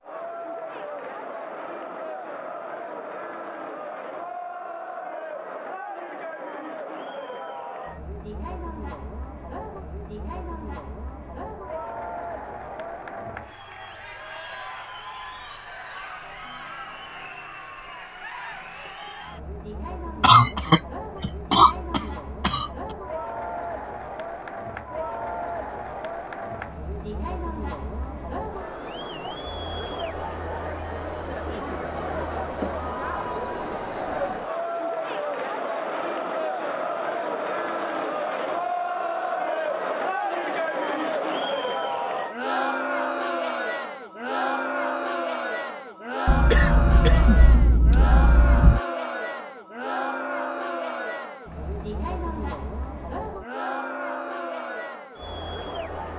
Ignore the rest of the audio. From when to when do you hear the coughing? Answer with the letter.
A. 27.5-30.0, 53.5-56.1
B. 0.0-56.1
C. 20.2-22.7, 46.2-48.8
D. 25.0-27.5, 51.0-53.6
C.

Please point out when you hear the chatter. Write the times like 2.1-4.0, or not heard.
0.0-56.1.